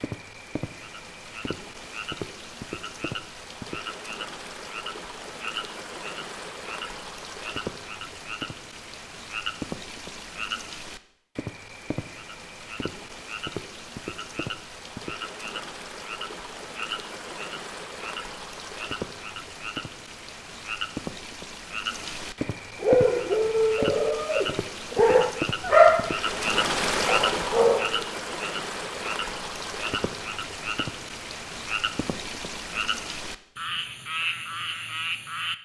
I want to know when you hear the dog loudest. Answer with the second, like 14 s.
26 s.